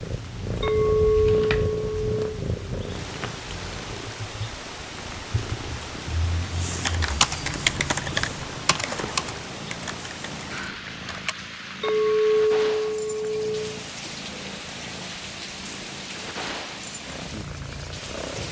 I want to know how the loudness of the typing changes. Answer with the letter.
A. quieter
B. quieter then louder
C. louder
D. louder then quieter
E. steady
A.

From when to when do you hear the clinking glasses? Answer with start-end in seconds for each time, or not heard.
0.6-2.2, 11.8-13.6.